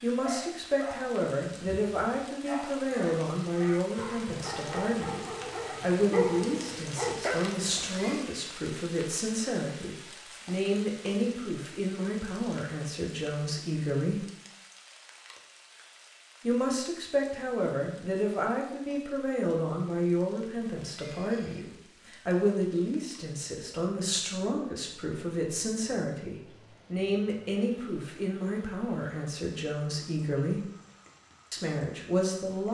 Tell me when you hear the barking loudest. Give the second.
6 s.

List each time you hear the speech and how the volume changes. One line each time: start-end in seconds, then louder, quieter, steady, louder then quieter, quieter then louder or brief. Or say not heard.
0.0-14.2 steady
16.4-30.6 steady
31.5-32.6 brief.